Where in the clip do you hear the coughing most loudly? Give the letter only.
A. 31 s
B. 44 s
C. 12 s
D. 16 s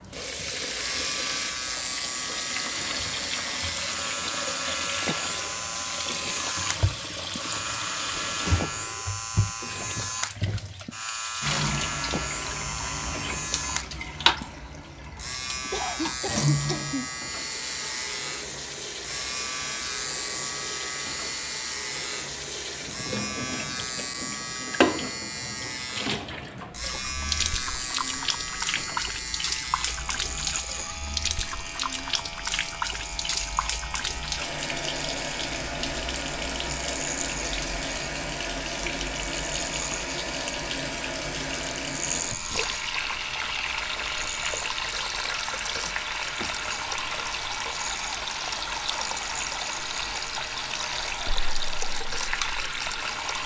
D.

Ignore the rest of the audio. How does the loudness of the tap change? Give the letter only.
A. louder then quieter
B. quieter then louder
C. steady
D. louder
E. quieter
C.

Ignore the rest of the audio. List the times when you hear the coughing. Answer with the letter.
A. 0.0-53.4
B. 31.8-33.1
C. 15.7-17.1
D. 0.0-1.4
C.